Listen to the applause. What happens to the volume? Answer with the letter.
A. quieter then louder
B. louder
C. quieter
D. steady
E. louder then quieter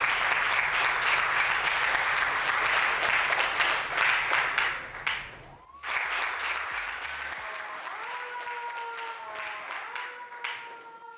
C.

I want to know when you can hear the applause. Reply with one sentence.
You can hear the applause from 0.0 to 11.0 s.